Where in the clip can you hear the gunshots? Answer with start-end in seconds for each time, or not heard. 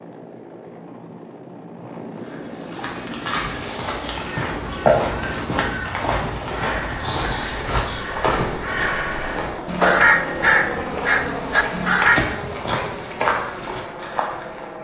8.7-9.7.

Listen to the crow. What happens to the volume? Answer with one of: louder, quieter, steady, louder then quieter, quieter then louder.
louder.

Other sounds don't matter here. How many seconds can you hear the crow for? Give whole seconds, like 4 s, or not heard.
8 s.